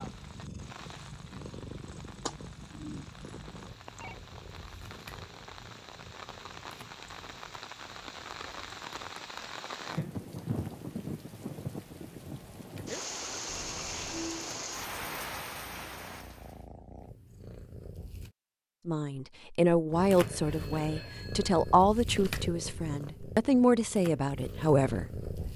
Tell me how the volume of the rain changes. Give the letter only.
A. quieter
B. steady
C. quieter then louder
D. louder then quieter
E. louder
E.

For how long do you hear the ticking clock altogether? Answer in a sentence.
The ticking clock can't be heard in this clip.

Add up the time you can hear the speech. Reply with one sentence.
The speech can be heard for 7 seconds in total.